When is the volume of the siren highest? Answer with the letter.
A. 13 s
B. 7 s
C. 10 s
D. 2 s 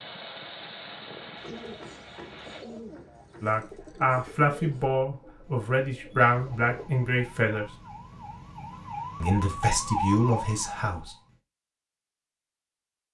C.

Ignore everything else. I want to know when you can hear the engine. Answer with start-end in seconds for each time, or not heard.
0.0-2.6.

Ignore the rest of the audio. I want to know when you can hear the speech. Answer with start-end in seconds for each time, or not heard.
3.4-7.7, 9.2-11.2.